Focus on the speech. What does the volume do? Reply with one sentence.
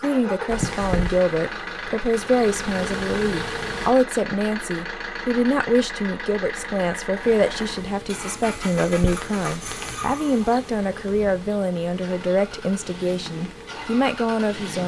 The volume of the speech stays about the same.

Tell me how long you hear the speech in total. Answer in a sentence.
The speech can be heard for 15 seconds in total.